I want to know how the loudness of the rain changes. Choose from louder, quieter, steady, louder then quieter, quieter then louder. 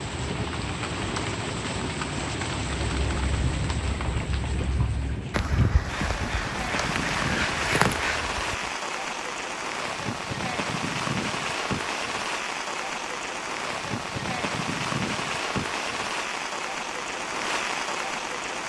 steady.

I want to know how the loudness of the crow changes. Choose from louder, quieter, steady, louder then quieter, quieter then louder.
louder.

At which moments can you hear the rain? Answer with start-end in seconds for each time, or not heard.
0.0-18.6.